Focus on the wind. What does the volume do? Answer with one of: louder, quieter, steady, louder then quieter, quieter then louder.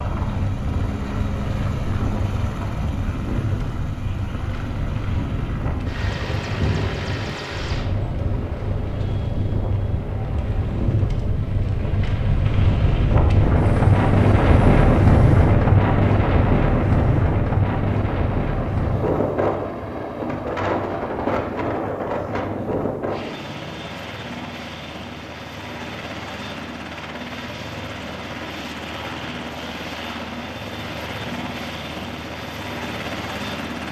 louder then quieter.